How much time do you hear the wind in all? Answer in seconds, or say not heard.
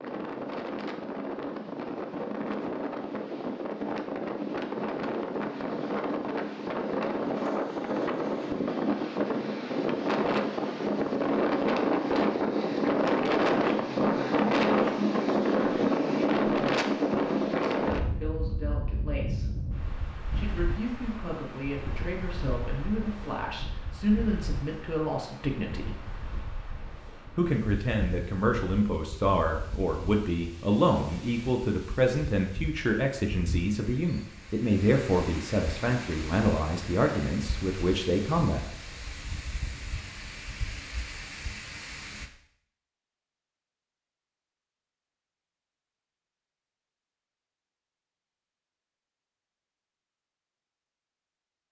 42 s.